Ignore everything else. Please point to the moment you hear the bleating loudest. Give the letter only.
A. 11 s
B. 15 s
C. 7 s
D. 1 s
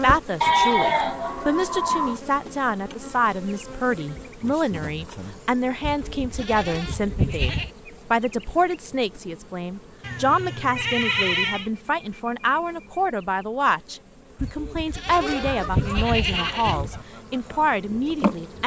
D.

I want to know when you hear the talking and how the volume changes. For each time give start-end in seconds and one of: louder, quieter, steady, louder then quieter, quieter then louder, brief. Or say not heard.
0.0-18.6 steady.